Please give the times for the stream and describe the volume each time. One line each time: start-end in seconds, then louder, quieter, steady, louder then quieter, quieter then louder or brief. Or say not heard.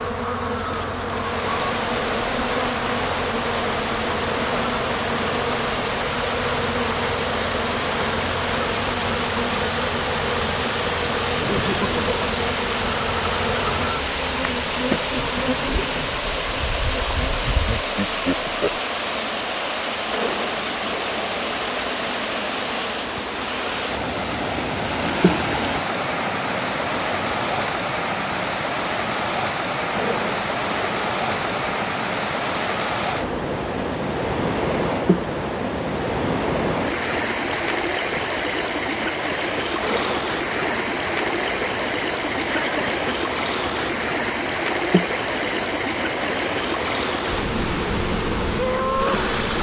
0.0-49.5 steady.